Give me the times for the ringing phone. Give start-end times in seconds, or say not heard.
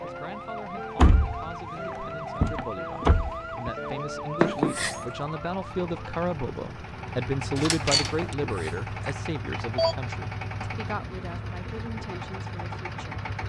4.4-5.0, 8.2-9.9.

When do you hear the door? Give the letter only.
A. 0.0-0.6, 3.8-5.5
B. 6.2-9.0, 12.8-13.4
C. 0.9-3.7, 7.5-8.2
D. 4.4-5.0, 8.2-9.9
C.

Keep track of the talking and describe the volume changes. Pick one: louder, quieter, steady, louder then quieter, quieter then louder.
louder then quieter.